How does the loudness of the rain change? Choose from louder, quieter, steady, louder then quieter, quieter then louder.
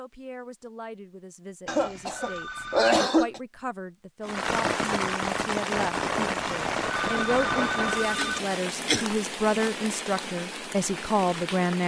quieter.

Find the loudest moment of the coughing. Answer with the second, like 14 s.
3 s.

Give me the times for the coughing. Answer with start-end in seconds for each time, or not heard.
1.6-3.4, 8.2-9.1.